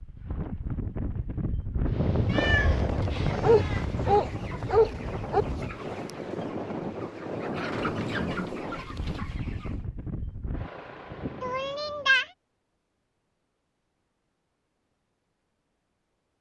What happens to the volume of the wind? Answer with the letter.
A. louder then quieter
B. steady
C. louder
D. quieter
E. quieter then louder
D.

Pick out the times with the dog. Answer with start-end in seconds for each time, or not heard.
3.4-5.5.